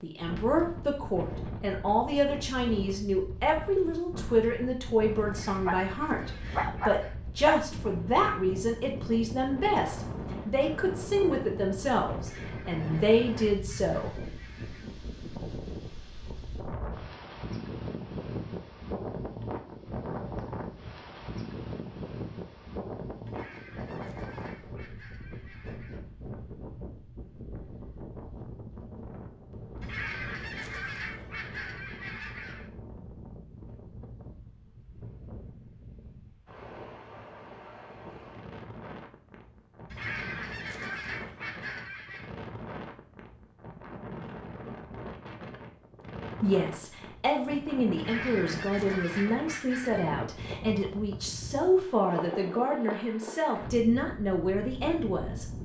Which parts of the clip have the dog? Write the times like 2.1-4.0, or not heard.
5.5-7.7.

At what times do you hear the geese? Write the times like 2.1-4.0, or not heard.
5.2-7.2, 12.2-14.9, 23.2-26.1, 29.8-32.7, 39.9-42.3, 48.0-50.2.